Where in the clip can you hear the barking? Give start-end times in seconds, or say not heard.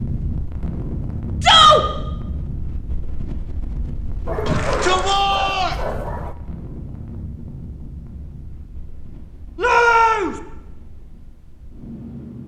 4.2-6.3.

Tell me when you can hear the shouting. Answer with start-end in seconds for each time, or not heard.
1.4-1.8, 4.5-5.8, 9.6-10.3.